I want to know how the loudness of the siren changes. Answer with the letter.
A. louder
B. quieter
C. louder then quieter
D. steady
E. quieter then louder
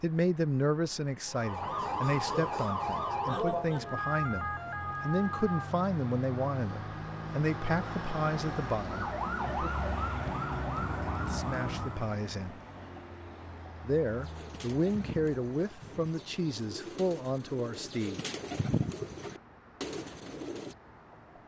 E.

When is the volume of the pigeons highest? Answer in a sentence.
The loudest moment of the pigeons is at 19 seconds.